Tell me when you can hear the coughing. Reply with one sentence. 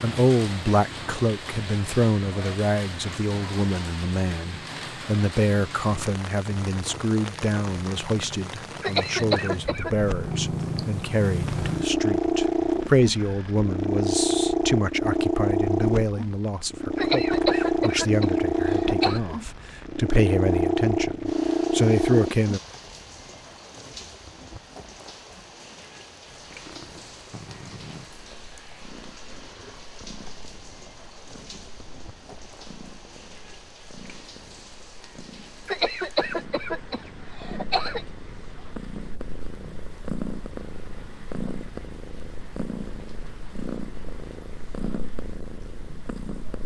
You can hear the coughing from 8.8 to 9.9 s, from 16.9 to 19.2 s and from 35.6 to 38.0 s.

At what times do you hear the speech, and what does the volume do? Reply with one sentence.
You can hear the speech from 0.0 to 22.6 s, at a steady volume.